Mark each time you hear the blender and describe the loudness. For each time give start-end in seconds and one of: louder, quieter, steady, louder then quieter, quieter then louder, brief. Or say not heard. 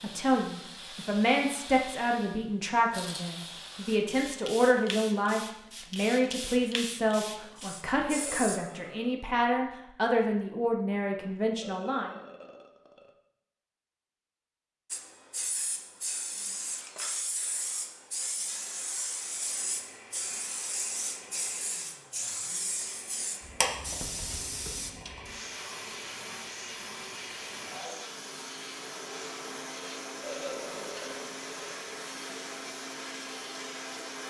19.4-34.2 louder.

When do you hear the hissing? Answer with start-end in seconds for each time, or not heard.
0.0-8.6, 14.9-34.2.